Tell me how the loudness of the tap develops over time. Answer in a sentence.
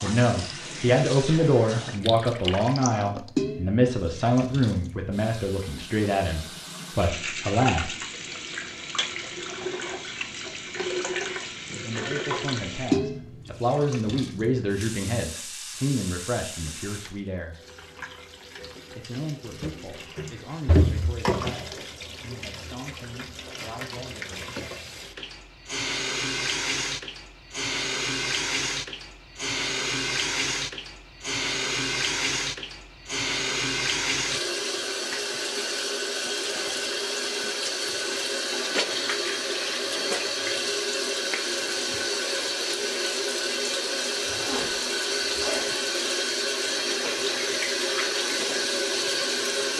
The loudness of the tap goes up.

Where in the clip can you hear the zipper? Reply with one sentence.
You can hear the zipper from 44.2 to 45.6 s.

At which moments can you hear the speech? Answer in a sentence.
You can hear the speech from 0.0 to 7.9 s, from 11.8 to 17.6 s and from 18.9 to 24.5 s.